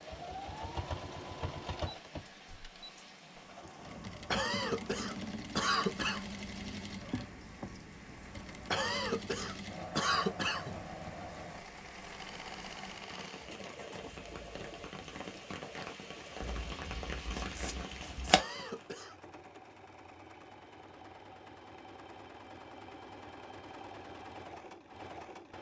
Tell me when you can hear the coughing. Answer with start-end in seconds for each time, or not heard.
4.3-6.2, 8.7-10.8, 18.3-19.1.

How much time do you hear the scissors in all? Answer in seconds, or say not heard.
2 s.